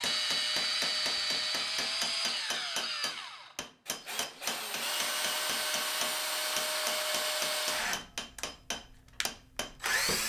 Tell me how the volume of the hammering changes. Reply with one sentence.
The volume of the hammering stays about the same.